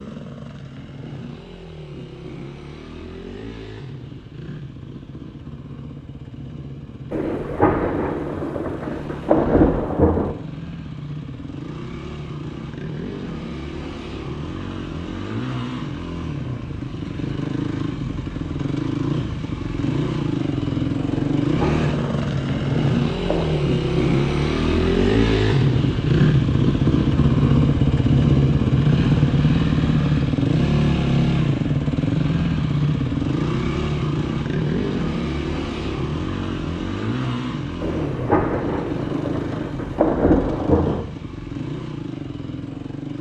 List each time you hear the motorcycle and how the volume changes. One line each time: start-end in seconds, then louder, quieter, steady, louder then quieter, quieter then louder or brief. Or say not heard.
0.0-43.1 louder then quieter.